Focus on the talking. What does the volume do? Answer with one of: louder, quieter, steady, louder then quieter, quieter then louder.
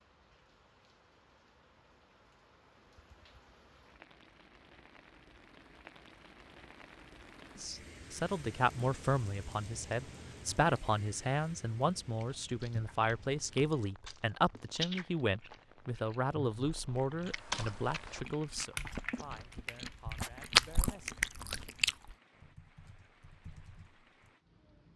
quieter.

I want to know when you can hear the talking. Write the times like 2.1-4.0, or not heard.
7.6-21.2.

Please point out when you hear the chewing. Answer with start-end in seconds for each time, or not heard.
12.0-22.1.